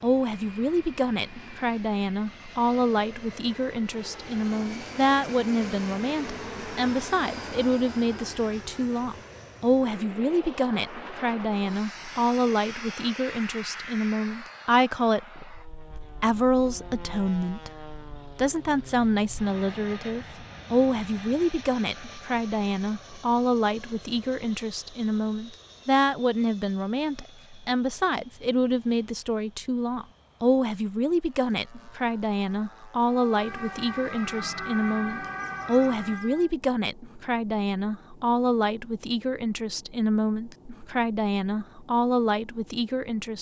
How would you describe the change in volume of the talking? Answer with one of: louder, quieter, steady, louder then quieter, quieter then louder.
steady.